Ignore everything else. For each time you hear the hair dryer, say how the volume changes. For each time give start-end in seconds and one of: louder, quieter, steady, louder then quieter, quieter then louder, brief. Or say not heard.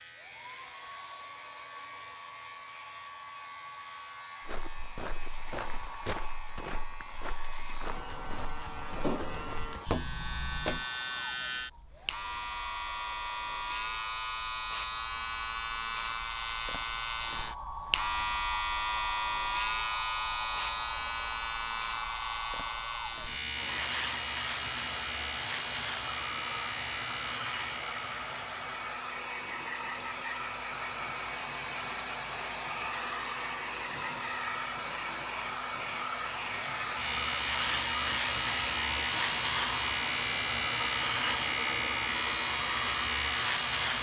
0.0-43.9 louder.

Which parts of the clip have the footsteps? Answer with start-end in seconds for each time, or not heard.
4.4-10.8.